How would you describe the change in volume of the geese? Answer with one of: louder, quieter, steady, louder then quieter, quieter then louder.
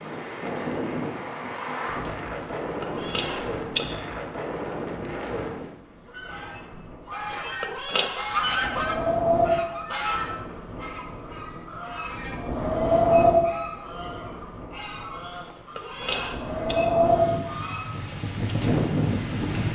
quieter.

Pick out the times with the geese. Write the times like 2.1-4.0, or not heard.
6.0-17.9.